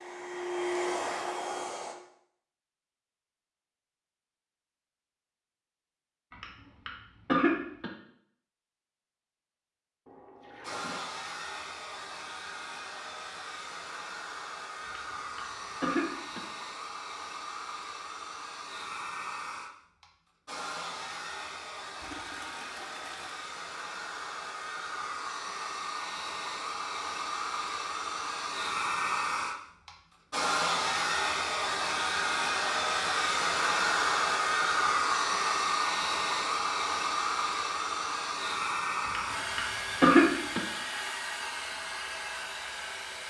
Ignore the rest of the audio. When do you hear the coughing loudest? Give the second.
40 s.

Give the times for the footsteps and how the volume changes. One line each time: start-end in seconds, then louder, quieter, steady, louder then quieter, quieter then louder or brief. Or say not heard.
not heard.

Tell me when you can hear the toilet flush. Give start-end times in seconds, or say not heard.
10.1-11.0, 22.0-23.5.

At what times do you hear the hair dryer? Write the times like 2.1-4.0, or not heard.
0.0-1.9, 10.6-43.2.